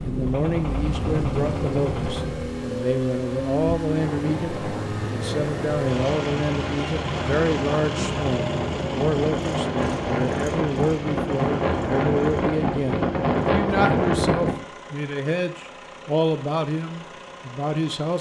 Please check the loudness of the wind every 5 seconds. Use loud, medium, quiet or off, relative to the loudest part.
medium, medium, loud, off.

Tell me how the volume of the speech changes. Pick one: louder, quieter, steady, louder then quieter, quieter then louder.
steady.